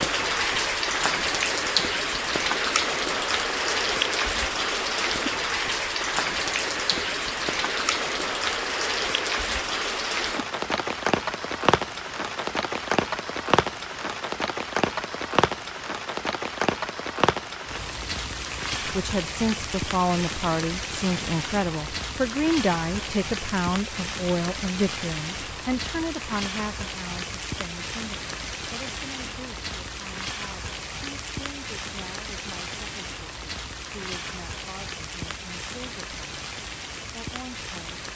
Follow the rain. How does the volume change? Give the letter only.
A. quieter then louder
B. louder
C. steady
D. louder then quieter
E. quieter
E.